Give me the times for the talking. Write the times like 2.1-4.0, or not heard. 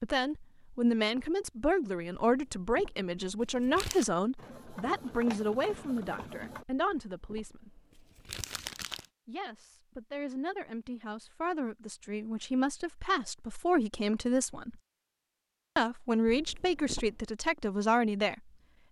0.0-7.7, 9.2-14.8, 15.8-18.4.